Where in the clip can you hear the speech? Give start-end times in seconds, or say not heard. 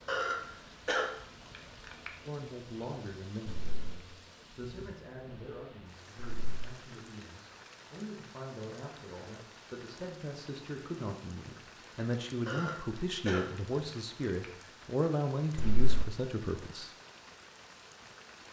2.2-16.9.